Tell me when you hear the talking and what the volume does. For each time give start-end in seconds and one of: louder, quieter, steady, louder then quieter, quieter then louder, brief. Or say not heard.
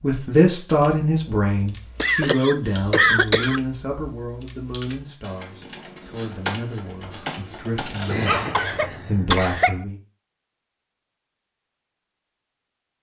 0.0-9.9 quieter then louder.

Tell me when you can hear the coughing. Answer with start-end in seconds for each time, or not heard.
2.0-3.6, 8.0-9.8.